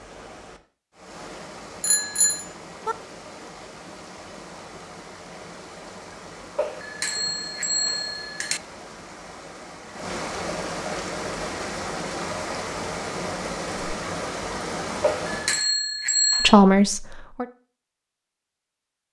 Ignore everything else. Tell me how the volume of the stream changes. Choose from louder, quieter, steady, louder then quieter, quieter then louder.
louder.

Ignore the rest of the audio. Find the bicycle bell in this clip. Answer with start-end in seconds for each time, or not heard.
1.8-3.0, 6.5-8.6, 15.0-16.6.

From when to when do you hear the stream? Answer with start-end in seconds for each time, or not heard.
0.0-15.7.